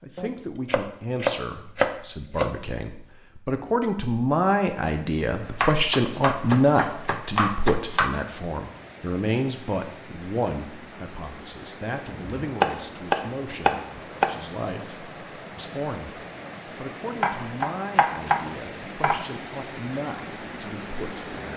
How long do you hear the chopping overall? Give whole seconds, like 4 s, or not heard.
9 s.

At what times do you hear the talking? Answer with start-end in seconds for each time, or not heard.
0.0-21.5.